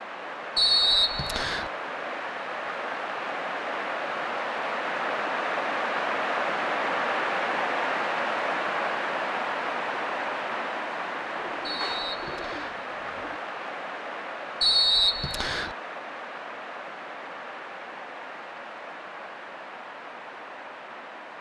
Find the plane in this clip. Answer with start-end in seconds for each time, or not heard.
not heard.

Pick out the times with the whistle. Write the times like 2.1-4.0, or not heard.
0.6-1.7, 11.6-12.8, 14.6-15.8.